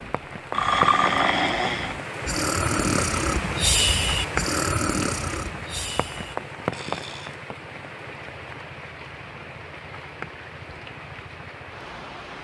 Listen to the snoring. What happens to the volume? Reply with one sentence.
The loudness of the snoring goes down.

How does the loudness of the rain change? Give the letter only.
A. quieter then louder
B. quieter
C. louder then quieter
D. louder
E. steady
B.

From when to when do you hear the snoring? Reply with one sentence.
The snoring can be heard from 0.0 to 7.4 s.